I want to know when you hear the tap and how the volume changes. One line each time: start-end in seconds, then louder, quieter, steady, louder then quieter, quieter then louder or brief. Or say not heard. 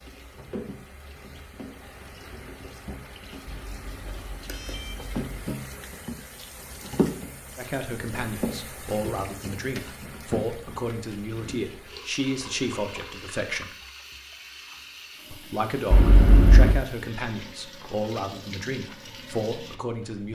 0.0-20.3 louder then quieter.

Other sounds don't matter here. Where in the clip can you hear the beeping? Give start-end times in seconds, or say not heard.
3.5-5.5, 15.9-16.8.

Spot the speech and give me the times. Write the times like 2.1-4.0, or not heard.
7.5-13.7, 15.3-20.3.